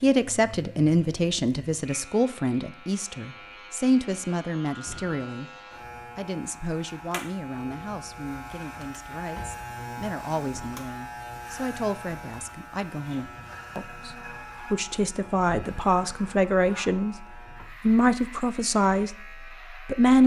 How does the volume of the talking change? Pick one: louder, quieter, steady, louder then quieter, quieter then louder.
quieter then louder.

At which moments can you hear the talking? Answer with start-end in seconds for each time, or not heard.
0.0-5.5, 6.2-20.2.